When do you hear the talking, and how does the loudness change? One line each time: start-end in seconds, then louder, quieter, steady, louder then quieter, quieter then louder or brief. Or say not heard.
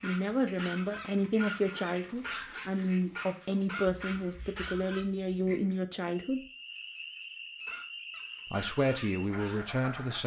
0.0-6.4 steady
8.5-10.2 brief.